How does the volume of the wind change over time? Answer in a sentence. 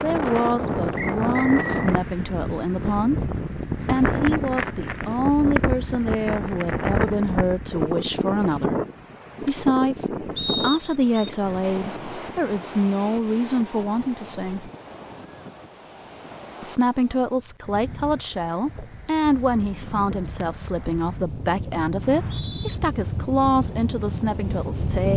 The volume of the wind goes down, then up.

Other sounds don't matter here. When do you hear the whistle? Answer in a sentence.
You can hear the whistle from 0.9 to 1.9 s, from 10.3 to 11.3 s and from 22.0 to 22.8 s.